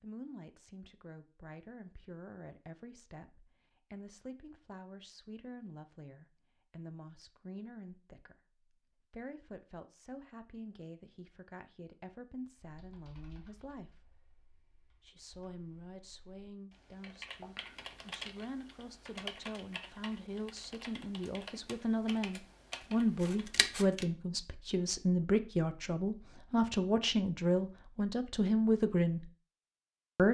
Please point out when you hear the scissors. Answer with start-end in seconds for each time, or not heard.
23.2-24.1.